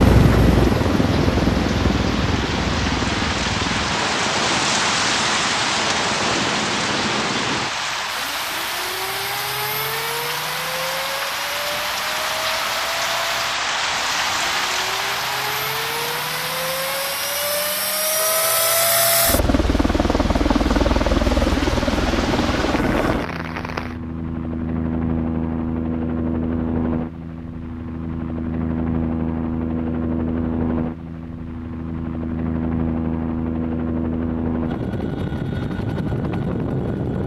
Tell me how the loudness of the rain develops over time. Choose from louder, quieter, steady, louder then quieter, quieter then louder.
quieter.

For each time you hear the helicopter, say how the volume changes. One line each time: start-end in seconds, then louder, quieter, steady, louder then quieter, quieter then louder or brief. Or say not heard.
0.0-37.2 quieter then louder.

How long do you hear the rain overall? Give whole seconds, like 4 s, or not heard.
24 s.